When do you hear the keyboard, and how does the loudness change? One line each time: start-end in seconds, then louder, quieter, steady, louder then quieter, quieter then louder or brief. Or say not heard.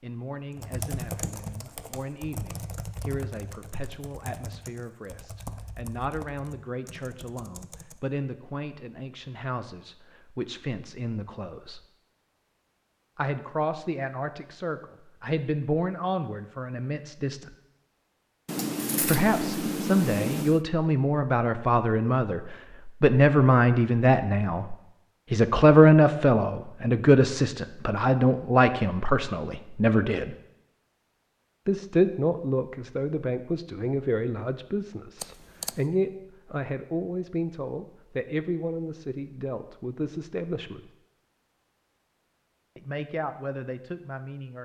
0.5-8.0 quieter.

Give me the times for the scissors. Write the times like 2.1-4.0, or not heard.
18.4-20.6, 35.2-35.8.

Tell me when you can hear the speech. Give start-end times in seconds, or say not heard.
0.0-11.8, 13.2-17.5, 19.0-30.4, 31.6-40.9, 42.8-44.6.